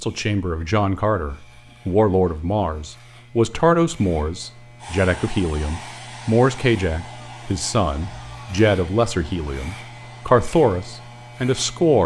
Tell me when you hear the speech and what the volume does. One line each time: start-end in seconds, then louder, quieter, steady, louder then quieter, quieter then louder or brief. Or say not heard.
0.0-12.0 steady.